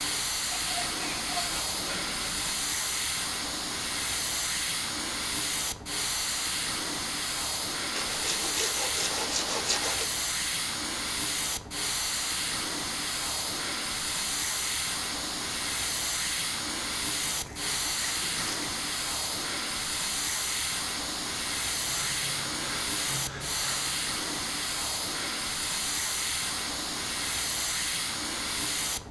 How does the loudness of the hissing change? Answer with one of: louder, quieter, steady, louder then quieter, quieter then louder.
steady.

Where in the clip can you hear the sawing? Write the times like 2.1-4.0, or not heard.
0.5-2.5, 7.9-10.1, 17.2-18.8, 21.9-24.0.